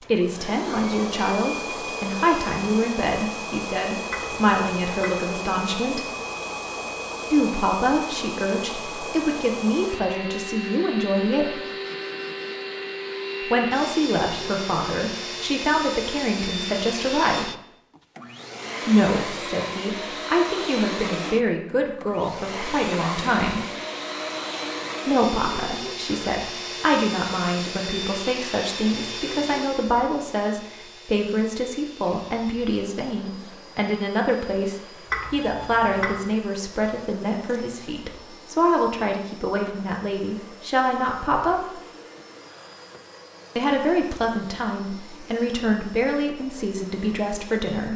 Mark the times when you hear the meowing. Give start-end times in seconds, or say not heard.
4.1-5.2, 35.1-36.2.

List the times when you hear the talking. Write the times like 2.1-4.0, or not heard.
0.1-6.1, 7.3-11.6, 13.4-17.5, 18.9-23.6, 25.1-41.8, 43.5-47.9.